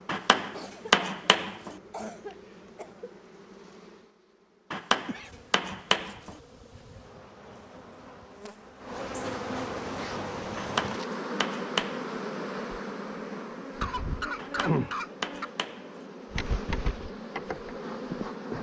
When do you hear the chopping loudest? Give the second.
1 s.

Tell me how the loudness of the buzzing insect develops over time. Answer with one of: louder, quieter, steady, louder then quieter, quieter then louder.
louder.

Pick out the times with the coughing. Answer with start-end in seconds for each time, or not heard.
0.5-1.1, 1.9-3.1, 9.2-10.3, 13.8-15.5.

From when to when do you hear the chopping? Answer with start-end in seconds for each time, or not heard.
0.1-1.8, 4.7-6.3, 10.6-12.1, 14.3-16.1.